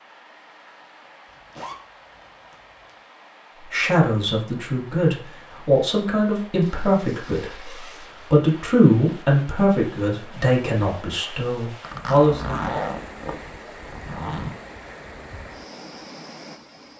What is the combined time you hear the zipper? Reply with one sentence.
The zipper can be heard for 6 seconds in total.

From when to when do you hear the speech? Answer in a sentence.
The speech can be heard from 3.6 to 12.6 s.